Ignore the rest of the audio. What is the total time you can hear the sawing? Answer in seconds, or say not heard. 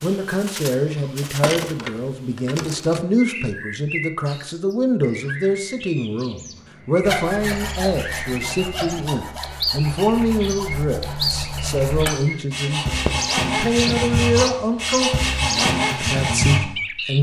10 s.